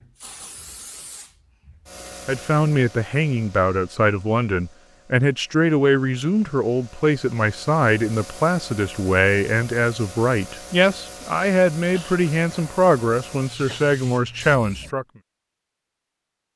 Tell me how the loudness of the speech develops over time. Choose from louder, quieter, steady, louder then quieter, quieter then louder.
steady.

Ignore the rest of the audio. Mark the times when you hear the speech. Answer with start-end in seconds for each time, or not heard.
2.2-15.1.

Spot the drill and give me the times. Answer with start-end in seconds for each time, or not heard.
not heard.